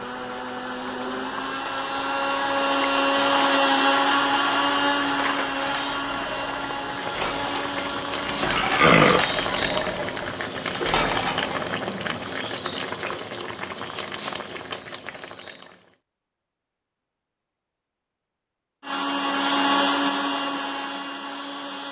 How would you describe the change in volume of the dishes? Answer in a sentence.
The loudness of the dishes goes up.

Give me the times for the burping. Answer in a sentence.
You can hear the burping from 7.8 to 9.2 s.